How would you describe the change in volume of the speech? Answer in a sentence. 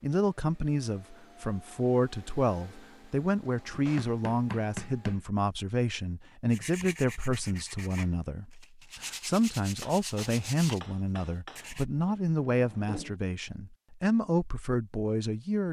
The loudness of the speech stays about the same.